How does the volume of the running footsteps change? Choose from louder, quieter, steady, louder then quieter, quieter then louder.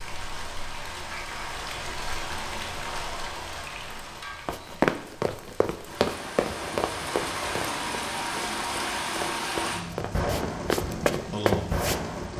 quieter then louder.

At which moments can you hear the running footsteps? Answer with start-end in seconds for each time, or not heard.
4.5-12.0.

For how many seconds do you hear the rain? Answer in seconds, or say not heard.
12 s.